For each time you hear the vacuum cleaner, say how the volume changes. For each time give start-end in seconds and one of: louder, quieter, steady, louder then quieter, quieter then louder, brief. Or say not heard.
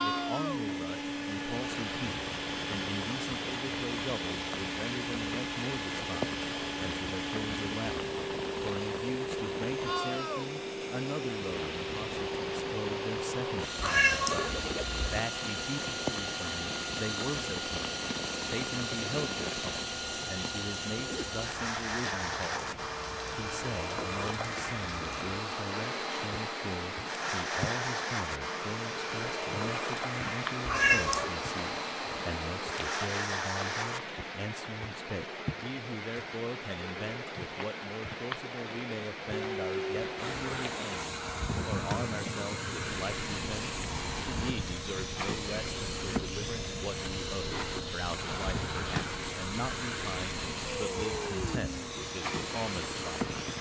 0.0-34.0 steady
39.3-53.5 steady.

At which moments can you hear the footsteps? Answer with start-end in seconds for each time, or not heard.
not heard.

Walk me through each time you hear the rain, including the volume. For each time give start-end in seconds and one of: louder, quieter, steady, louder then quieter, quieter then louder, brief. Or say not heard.
0.0-53.5 steady.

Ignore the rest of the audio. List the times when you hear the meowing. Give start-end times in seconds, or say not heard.
13.8-15.2, 30.6-31.4.